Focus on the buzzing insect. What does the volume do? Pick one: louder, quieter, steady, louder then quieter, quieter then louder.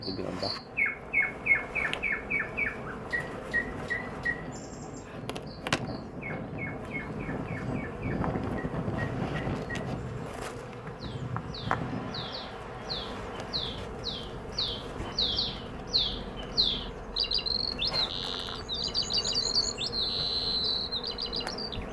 steady.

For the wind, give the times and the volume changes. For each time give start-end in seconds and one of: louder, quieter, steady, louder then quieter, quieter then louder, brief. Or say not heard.
0.0-21.8 louder then quieter.